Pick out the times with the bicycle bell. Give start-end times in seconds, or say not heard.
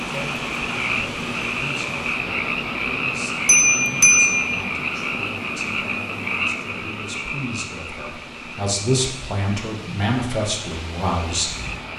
3.5-4.5.